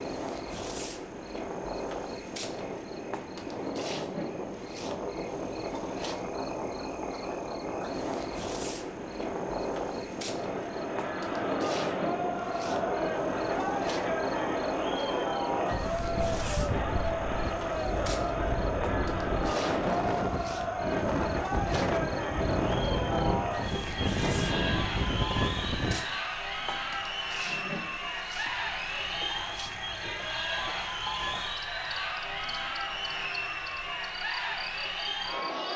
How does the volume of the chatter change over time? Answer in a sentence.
The loudness of the chatter stays about the same.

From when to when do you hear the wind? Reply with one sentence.
The wind can be heard from 0.0 to 26.0 s.